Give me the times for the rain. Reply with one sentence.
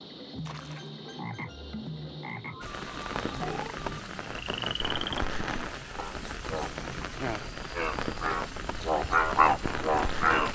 You can hear the rain from 2.6 to 10.5 s.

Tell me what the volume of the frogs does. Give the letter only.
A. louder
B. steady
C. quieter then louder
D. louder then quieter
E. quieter
A.